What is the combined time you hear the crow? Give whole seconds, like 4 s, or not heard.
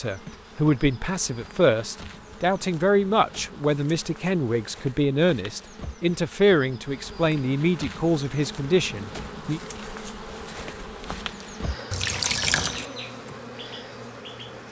not heard.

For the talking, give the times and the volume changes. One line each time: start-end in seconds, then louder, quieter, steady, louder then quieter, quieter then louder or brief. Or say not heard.
0.0-9.6 steady.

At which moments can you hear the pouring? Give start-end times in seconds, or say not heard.
11.9-12.8.